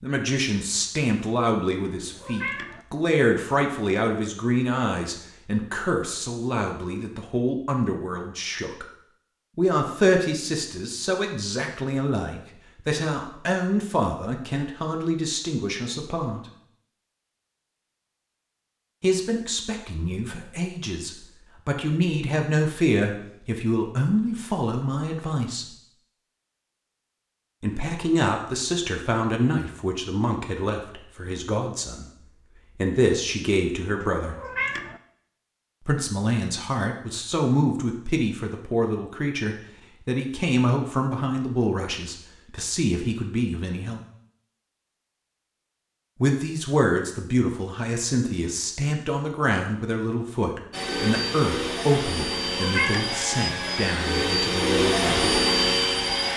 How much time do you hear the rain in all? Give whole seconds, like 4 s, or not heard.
not heard.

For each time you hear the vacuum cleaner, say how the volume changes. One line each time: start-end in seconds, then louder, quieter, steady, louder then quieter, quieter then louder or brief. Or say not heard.
50.7-56.3 louder.